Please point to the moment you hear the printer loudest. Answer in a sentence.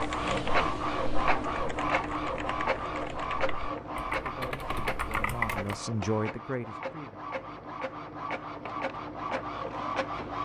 The loudest moment of the printer is at 1 second.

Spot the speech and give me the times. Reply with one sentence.
You can hear the speech from 4.0 to 7.2 s.